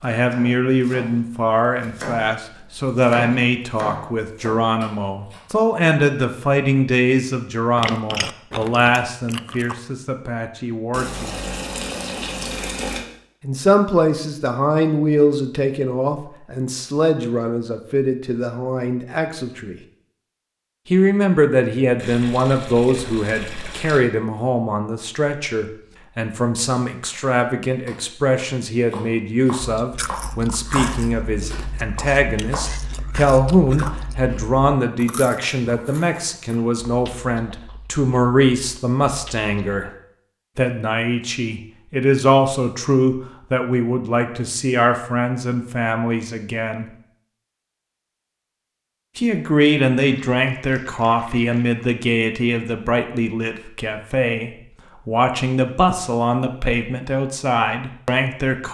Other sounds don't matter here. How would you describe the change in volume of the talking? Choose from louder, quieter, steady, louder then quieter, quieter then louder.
steady.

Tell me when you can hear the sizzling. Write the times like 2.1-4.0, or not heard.
not heard.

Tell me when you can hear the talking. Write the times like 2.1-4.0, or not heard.
0.0-11.3, 13.4-19.8, 20.9-39.9, 40.5-46.9, 49.1-58.7.